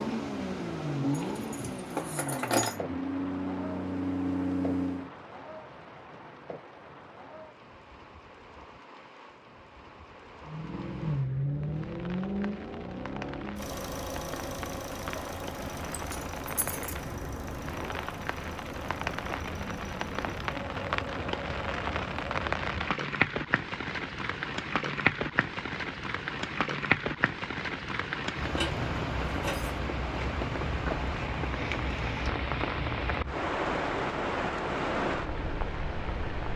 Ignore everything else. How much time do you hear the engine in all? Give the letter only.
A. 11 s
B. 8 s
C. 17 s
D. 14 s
C.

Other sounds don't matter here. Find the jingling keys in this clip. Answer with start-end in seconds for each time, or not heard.
1.4-2.8, 15.9-16.9, 28.4-29.8.